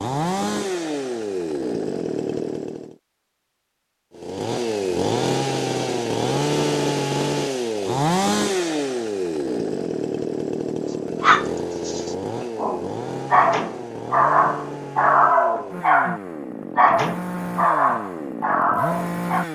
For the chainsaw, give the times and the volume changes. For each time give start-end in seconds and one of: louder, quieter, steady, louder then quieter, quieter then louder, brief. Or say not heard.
0.0-3.0 brief
4.2-19.4 quieter.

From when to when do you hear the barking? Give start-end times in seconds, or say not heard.
10.9-19.4.